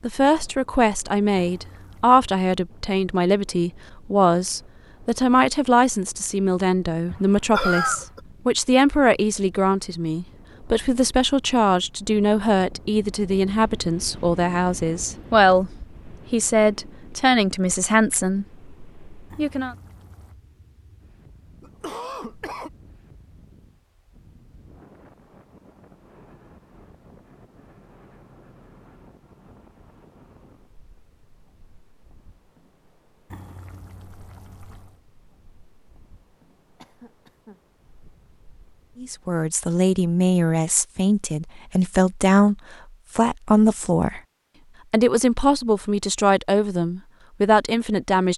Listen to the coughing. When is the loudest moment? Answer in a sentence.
The volume of the coughing peaks at 8 seconds.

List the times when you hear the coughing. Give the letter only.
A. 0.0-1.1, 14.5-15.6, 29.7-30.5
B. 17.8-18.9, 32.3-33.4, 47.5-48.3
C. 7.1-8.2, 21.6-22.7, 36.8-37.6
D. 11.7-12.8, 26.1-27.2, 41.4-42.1
C.